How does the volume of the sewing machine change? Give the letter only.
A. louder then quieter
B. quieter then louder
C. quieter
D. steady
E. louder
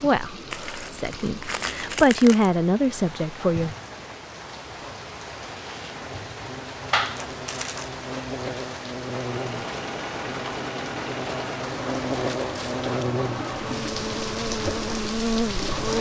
D.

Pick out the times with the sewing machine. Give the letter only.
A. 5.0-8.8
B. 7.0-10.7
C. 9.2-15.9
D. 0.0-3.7
C.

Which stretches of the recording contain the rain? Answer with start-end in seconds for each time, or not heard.
0.0-15.9.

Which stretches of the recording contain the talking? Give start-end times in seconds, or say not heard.
0.0-3.7.